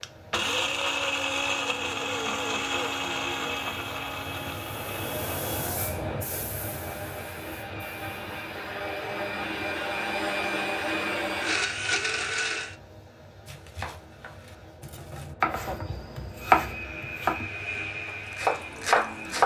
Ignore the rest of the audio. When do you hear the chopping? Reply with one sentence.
You can hear the chopping from 13.4 to 19.4 s.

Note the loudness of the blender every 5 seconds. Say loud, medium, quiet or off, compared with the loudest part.
loud, medium, loud, medium.